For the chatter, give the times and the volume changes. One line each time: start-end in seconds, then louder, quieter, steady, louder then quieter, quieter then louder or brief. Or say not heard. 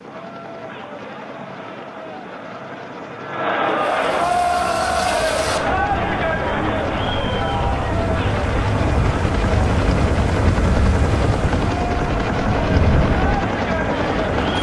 0.0-14.5 louder then quieter.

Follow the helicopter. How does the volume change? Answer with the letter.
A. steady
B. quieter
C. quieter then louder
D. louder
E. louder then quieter
D.